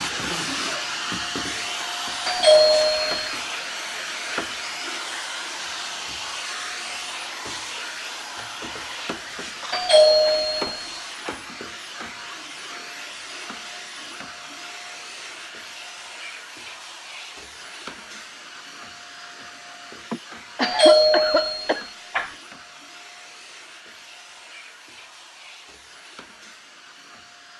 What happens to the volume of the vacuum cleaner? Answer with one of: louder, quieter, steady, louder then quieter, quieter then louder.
quieter.